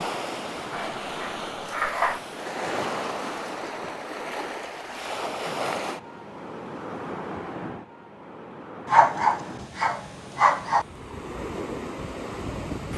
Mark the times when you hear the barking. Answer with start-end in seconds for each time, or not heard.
0.7-2.2, 8.8-10.8.